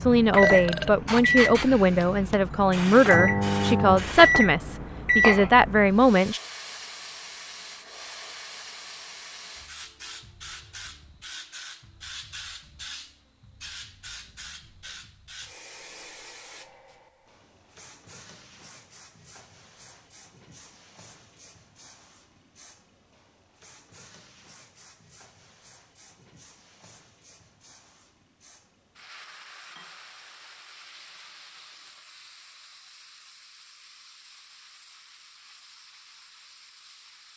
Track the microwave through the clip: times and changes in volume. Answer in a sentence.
You can hear the microwave from 0.0 to 6.0 s, getting quieter then louder.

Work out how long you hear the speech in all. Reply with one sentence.
You can hear the speech for 6 seconds altogether.